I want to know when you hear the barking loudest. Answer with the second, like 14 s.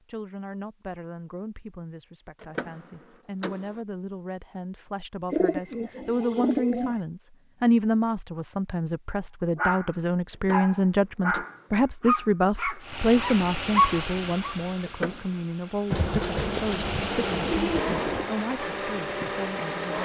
14 s.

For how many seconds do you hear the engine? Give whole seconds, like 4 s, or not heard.
7 s.